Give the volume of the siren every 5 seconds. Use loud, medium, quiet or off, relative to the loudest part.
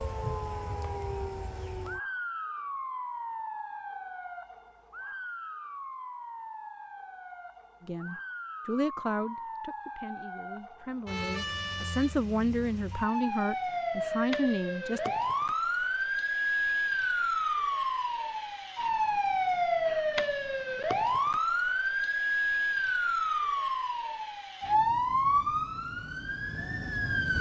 medium, quiet, medium, loud, loud, loud.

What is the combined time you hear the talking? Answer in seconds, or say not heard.
7 s.